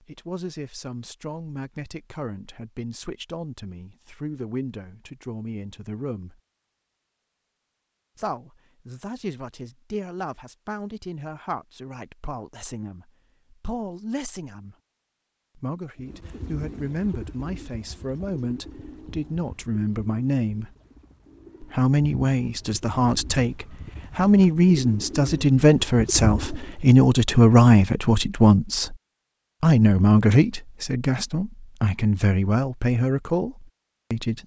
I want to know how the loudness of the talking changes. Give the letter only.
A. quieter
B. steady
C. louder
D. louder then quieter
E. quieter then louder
C.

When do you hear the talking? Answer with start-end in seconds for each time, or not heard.
0.0-6.4, 8.2-14.8, 15.6-20.7, 21.6-28.9, 29.6-34.4.